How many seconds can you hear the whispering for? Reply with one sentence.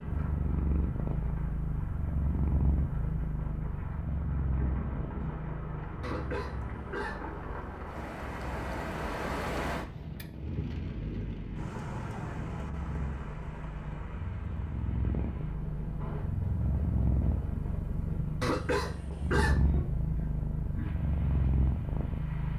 The whispering can't be heard in this clip.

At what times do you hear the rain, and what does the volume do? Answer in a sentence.
You can hear the rain from 0.0 to 22.5 s, getting louder then quieter.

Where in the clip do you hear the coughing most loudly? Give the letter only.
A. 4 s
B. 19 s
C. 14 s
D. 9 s
B.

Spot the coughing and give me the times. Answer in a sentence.
The coughing can be heard from 6.0 to 7.2 s and from 18.4 to 19.6 s.